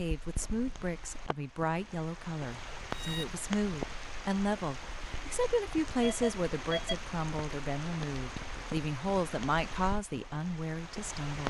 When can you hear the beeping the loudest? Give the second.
7 s.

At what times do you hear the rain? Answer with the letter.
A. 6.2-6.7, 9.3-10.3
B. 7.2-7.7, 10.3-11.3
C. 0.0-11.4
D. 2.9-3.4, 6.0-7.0
C.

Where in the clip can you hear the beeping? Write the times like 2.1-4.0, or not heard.
2.9-3.4, 6.0-7.0.